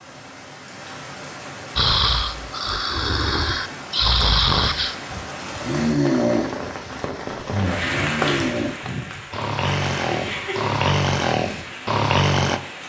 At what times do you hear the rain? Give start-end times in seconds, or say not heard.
0.0-12.8.